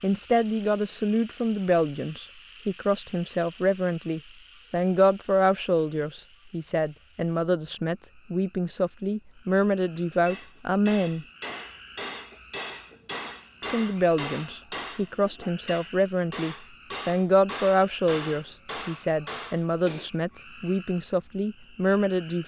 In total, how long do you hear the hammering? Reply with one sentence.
You can hear the hammering for 10 seconds altogether.